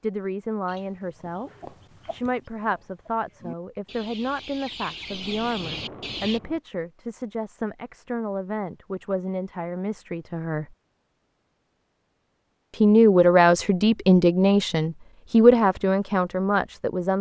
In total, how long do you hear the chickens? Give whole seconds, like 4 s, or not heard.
6 s.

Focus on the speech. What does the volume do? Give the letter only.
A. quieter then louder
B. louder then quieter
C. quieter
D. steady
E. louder
E.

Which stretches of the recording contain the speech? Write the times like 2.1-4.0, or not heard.
0.0-10.8, 12.8-17.1.